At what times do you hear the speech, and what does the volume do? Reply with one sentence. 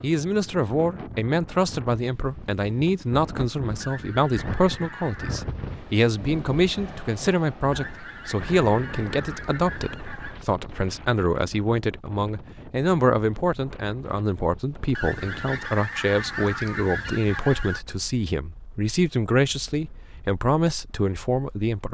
You can hear the speech from 0.0 to 21.8 s, at a steady volume.